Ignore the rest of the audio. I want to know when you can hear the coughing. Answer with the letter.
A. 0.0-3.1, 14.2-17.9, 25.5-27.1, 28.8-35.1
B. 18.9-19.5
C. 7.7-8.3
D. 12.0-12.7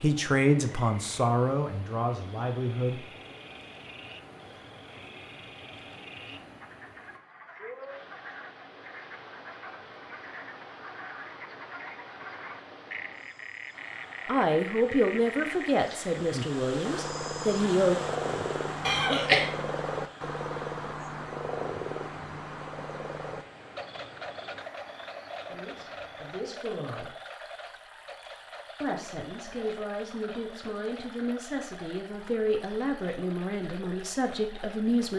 B.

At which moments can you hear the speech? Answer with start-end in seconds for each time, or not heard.
0.0-3.1, 14.2-17.9, 25.5-27.1, 28.8-35.1.